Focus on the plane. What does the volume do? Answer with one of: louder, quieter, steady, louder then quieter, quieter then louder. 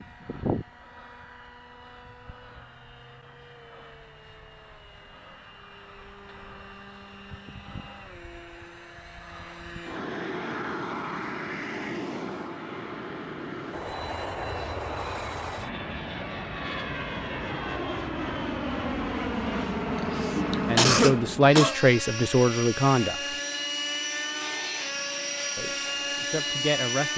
louder.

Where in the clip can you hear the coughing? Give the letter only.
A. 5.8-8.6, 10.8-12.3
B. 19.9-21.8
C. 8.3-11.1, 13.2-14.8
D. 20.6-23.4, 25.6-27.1
B.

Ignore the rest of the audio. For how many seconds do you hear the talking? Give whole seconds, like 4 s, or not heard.
4 s.